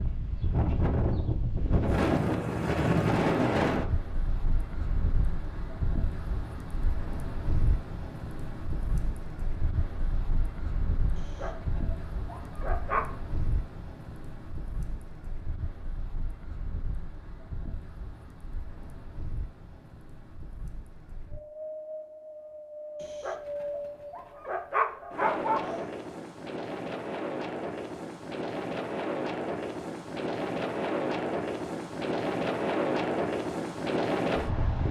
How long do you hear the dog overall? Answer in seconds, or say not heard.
5 s.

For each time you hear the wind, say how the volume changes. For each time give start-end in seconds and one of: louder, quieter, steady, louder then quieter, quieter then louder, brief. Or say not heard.
0.0-34.8 quieter then louder.